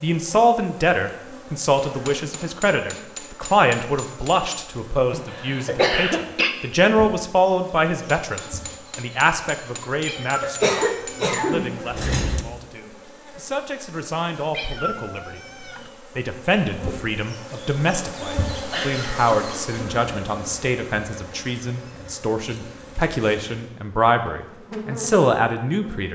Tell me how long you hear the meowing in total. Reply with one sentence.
The meowing can be heard for 3 seconds in total.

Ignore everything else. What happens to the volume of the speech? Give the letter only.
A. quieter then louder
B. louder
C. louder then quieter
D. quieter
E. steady
A.